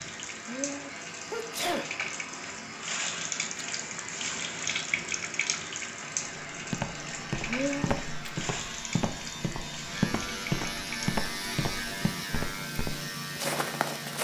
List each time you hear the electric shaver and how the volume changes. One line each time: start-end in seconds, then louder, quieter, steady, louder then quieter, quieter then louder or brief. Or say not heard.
0.0-14.1 louder.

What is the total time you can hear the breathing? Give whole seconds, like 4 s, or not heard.
not heard.